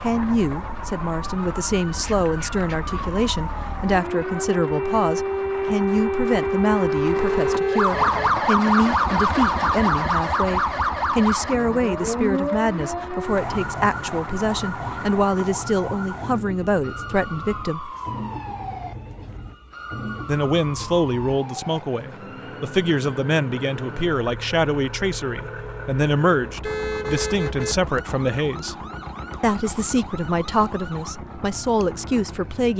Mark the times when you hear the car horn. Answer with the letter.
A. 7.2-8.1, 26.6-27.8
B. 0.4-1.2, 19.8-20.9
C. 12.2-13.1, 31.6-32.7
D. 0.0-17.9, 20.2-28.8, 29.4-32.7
A.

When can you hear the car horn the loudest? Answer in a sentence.
The volume of the car horn peaks at 27 seconds.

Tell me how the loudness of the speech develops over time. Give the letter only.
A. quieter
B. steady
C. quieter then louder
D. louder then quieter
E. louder
B.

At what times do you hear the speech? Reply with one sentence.
The speech can be heard from 0.0 to 17.9 s, from 20.2 to 28.8 s and from 29.4 to 32.7 s.